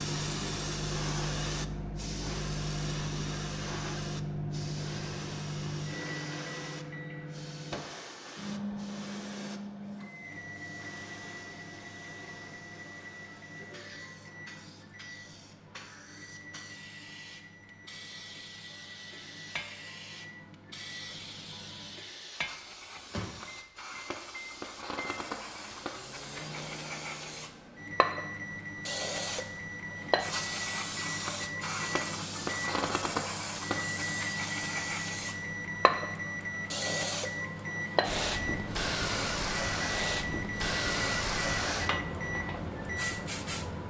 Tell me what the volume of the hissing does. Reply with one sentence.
The loudness of the hissing goes down, then up.